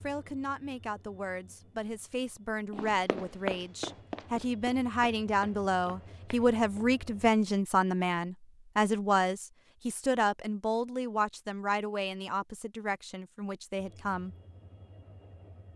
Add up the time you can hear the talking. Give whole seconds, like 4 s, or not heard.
14 s.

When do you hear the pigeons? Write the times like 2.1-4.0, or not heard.
not heard.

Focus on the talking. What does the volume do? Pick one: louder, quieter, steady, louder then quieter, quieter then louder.
louder then quieter.